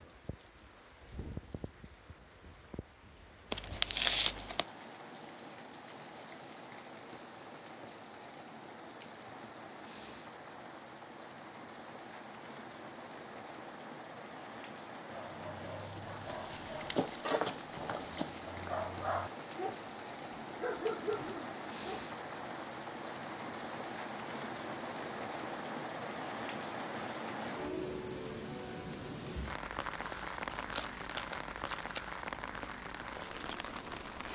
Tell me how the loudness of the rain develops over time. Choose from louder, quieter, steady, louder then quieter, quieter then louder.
louder.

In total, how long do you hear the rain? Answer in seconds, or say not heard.
34 s.